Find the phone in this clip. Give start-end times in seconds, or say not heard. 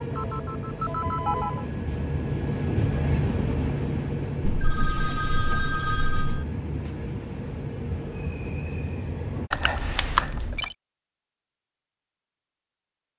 0.1-1.6, 4.4-6.5, 9.5-10.8.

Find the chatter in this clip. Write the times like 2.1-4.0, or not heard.
not heard.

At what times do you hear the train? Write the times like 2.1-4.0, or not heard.
0.0-9.5.